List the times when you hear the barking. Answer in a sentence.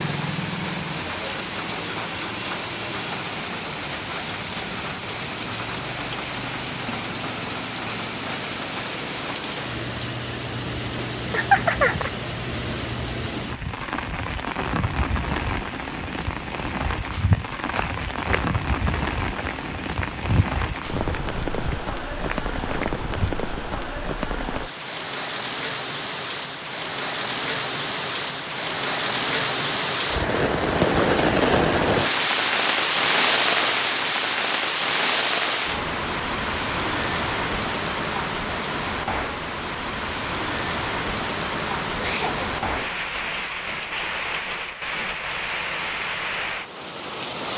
The barking can't be heard in this clip.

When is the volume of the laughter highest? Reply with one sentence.
The loudest moment of the laughter is at 12 seconds.